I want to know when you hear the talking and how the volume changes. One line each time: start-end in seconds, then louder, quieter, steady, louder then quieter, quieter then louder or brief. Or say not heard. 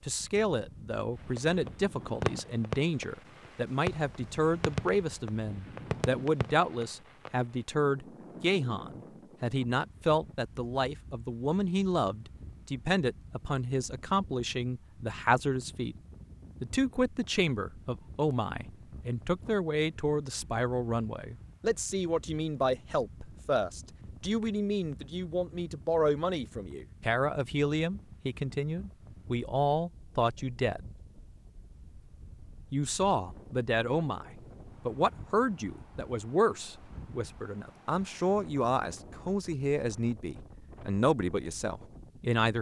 0.1-15.9 steady
16.6-30.9 steady
32.7-42.5 steady.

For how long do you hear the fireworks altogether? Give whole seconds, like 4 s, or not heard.
6 s.